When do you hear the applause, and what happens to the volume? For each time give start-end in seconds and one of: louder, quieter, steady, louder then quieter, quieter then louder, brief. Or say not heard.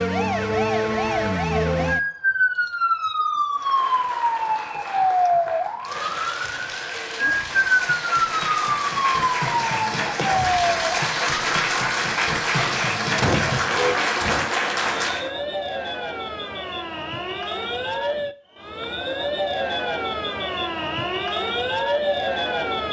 3.5-15.3 louder.